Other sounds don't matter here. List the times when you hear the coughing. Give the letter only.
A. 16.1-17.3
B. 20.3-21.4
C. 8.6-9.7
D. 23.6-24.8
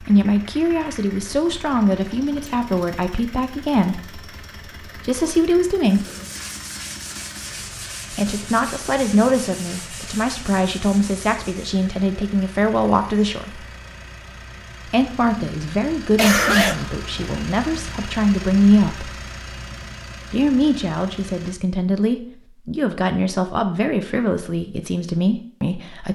A.